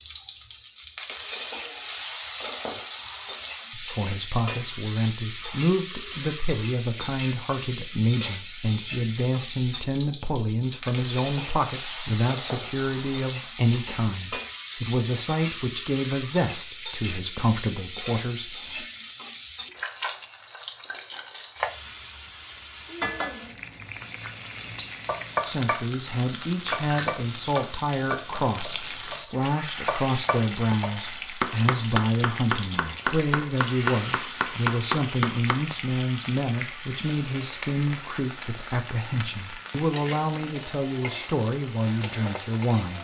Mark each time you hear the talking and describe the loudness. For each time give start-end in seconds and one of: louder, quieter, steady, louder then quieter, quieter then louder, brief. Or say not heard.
3.7-18.9 steady
25.4-42.9 steady.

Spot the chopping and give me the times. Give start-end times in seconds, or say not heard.
25.1-35.6.